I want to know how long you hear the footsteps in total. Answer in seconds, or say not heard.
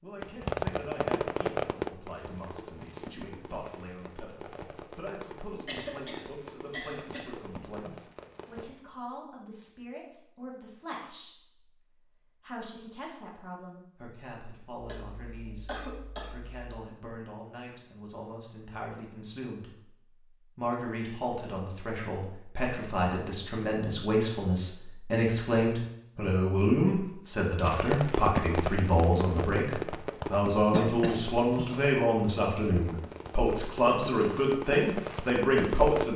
not heard.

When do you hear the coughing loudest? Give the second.
31 s.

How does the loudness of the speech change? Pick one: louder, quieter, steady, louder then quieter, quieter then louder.
louder.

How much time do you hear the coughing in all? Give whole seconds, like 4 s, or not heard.
5 s.